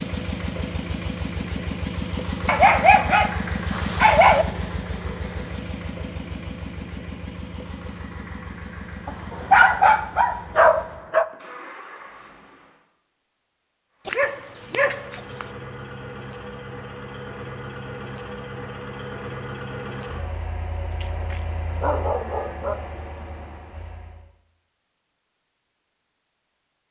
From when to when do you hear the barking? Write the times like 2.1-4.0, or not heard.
2.5-4.5, 9.1-11.2, 14.1-15.4, 20.9-22.8.